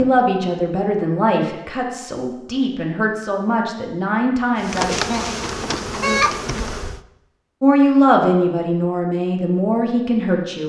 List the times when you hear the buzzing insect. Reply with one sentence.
The buzzing insect can be heard from 4.5 to 7.0 s.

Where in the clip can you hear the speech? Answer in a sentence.
The speech can be heard from 0.0 to 5.2 s and from 7.6 to 10.6 s.